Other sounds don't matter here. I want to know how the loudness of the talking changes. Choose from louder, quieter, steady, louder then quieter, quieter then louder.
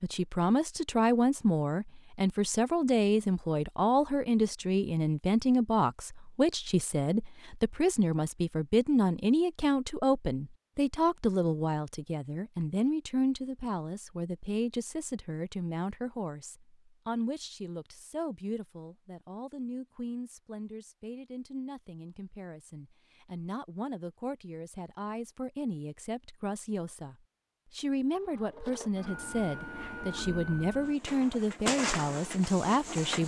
quieter then louder.